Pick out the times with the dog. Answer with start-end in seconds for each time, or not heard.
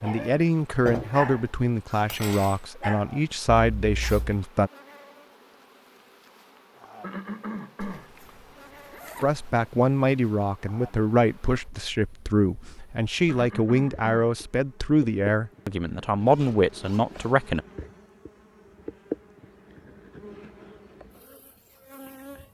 0.0-3.0.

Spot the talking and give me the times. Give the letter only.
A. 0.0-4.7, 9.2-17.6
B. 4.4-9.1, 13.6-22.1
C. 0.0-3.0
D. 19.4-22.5
A.